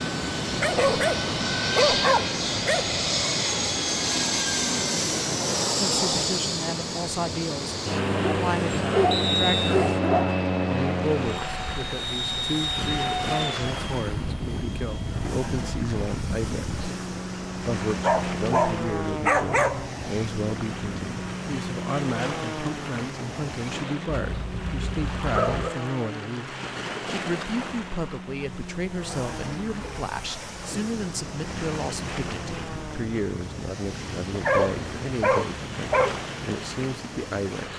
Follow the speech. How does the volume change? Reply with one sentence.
The loudness of the speech stays about the same.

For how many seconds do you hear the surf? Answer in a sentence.
You can hear the surf for 38 seconds altogether.